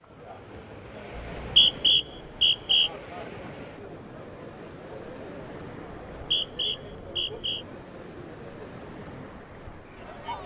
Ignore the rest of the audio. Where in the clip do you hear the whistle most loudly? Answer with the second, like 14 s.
2 s.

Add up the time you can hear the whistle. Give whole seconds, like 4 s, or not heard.
3 s.